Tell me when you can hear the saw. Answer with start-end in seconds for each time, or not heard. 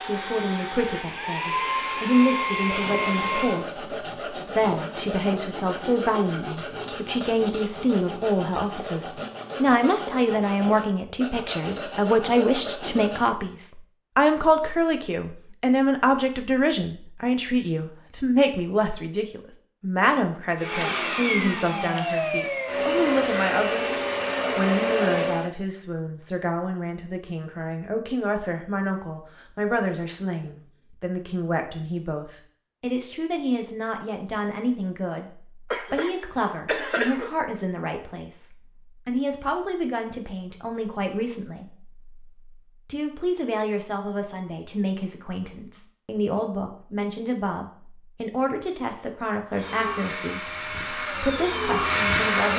2.6-13.2.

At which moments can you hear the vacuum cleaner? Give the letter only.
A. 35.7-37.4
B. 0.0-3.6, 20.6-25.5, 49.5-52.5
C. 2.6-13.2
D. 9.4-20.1
B.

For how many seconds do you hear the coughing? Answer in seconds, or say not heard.
2 s.